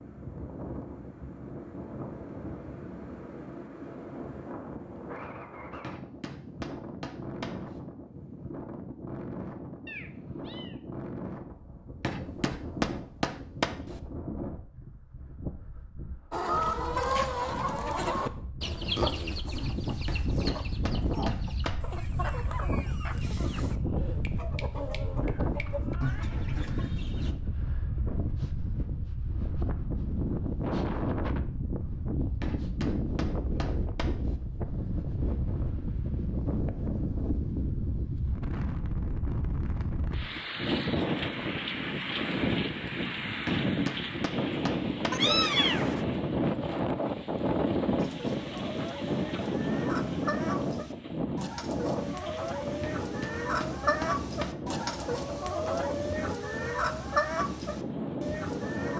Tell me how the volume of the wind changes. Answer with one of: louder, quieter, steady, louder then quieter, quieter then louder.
louder.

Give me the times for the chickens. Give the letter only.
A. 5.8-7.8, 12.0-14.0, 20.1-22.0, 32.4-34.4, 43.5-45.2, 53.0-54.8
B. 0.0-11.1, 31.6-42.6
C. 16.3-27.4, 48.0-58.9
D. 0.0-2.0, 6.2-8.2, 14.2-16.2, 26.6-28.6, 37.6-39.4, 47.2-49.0
C.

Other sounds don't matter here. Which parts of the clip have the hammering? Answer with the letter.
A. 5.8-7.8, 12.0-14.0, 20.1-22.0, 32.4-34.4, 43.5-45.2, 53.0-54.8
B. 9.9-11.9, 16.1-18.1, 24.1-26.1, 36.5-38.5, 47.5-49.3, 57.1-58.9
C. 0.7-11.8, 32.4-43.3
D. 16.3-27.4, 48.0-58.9
A.